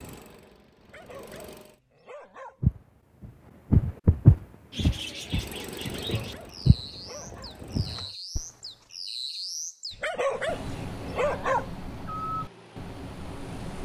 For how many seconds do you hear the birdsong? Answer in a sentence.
The birdsong can be heard for 9 seconds in total.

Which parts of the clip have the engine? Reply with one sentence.
You can hear the engine from 0.0 to 1.8 s, from 5.2 to 8.2 s and from 10.2 to 13.8 s.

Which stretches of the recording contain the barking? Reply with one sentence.
You can hear the barking from 0.8 to 2.6 s, from 6.0 to 7.5 s and from 9.9 to 11.7 s.